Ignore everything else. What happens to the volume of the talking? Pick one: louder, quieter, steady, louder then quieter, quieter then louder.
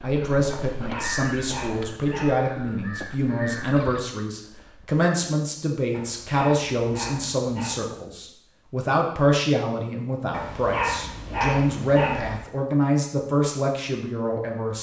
steady.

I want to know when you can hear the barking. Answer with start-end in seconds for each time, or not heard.
0.5-2.4, 5.9-7.8, 10.3-12.4.